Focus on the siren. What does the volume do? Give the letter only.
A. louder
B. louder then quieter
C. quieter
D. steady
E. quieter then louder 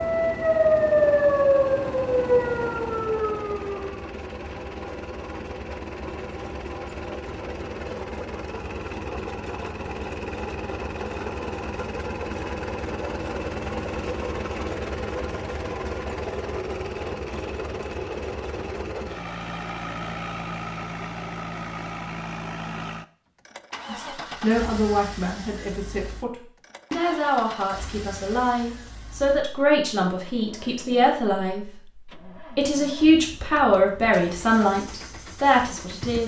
C.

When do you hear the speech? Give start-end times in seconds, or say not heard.
23.9-31.6, 32.5-36.2.